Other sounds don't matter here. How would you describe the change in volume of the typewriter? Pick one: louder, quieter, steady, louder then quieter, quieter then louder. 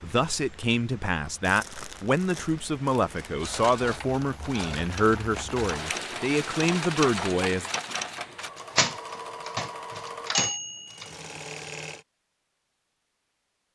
louder.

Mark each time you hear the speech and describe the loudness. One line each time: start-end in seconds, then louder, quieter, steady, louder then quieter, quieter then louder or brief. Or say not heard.
0.0-7.7 steady.